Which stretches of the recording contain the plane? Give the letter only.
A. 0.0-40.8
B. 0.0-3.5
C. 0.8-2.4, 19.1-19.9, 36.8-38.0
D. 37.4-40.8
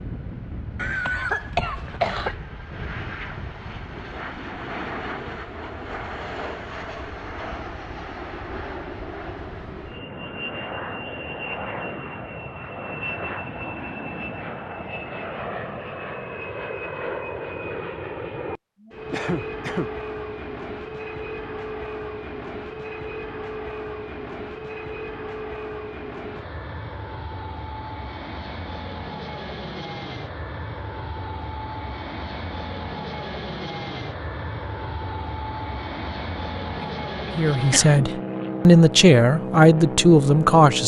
A.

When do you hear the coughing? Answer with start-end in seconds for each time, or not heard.
0.8-2.4, 19.1-19.9, 36.8-38.0.